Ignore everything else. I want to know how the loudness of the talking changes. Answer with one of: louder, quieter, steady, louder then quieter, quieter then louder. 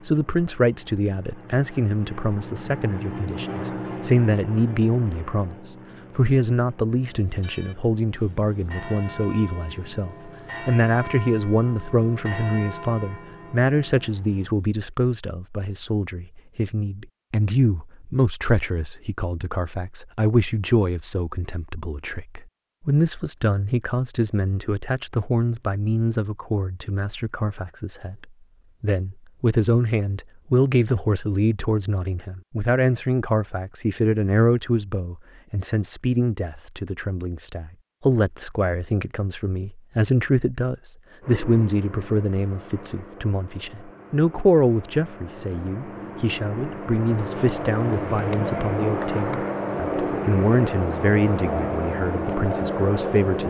steady.